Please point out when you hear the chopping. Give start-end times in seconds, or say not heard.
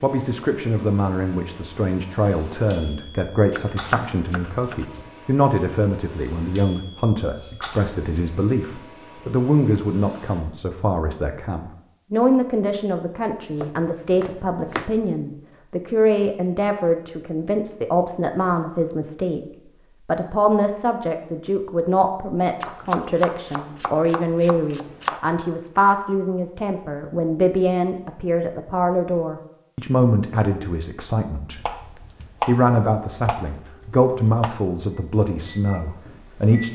3.5-5.1, 13.6-14.9, 22.6-25.2, 31.6-34.5.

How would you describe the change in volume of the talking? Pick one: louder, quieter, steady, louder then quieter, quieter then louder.
steady.